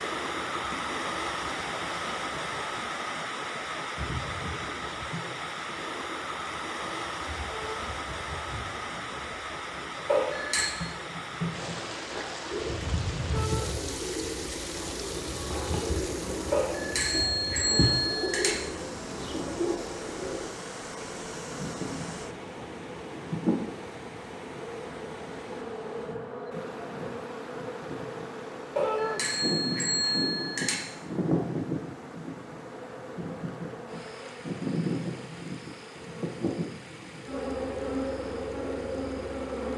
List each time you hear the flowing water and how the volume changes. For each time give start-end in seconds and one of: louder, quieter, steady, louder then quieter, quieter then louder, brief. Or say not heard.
0.0-39.7 quieter.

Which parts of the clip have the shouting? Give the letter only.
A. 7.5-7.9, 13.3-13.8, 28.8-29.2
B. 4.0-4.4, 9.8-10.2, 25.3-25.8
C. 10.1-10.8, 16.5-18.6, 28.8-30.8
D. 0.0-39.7
A.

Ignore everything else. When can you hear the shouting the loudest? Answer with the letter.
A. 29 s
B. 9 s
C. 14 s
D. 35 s
A.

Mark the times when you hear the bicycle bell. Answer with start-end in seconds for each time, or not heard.
10.1-10.8, 16.5-18.6, 28.8-30.8.